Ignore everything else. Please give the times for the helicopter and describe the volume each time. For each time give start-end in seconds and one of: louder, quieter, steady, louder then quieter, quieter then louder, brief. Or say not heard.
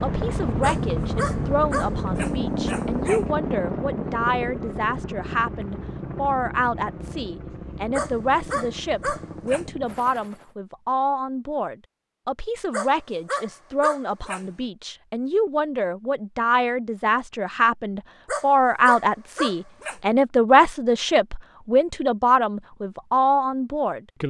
0.0-10.6 quieter.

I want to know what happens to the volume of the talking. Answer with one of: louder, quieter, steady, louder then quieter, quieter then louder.
louder.